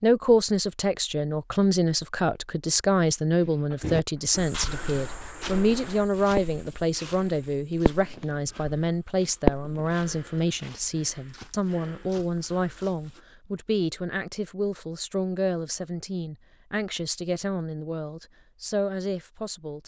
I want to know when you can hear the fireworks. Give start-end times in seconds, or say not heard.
3.4-6.6, 7.8-8.2, 9.4-9.9.